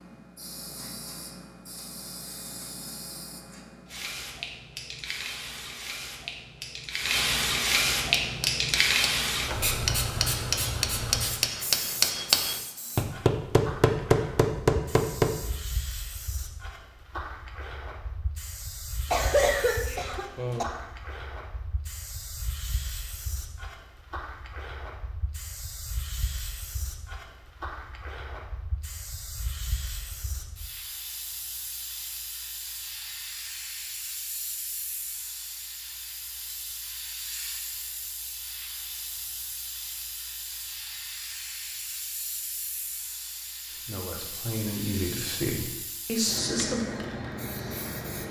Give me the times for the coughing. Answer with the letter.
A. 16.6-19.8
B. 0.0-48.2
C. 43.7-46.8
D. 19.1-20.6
D.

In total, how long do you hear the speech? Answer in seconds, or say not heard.
3 s.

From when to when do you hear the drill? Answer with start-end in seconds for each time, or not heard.
not heard.